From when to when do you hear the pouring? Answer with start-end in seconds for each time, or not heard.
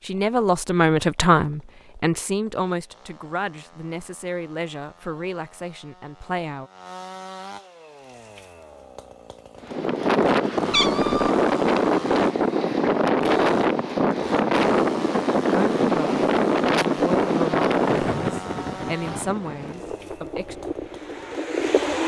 not heard.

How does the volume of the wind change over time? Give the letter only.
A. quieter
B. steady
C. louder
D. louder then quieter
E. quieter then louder
A.